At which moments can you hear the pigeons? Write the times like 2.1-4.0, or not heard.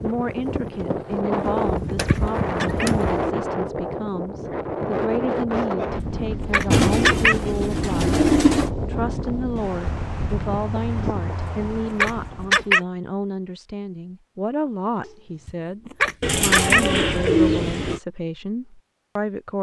1.4-3.3, 6.7-8.7, 16.2-18.0.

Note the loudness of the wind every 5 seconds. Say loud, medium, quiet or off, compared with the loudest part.
loud, loud, medium, off.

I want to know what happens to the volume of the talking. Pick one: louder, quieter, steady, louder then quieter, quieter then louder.
steady.